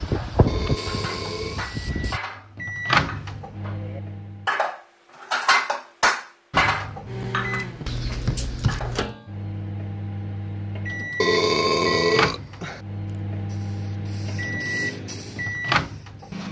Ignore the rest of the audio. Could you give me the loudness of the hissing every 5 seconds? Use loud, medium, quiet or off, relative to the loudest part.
loud, off, medium, quiet.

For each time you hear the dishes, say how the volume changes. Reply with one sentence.
The dishes can be heard from 0.1 to 9.0 s, getting louder then quieter.